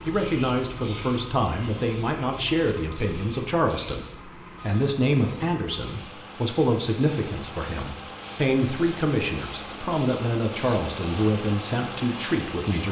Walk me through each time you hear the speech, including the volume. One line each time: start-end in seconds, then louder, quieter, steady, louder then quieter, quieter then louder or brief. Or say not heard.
0.1-12.8 steady.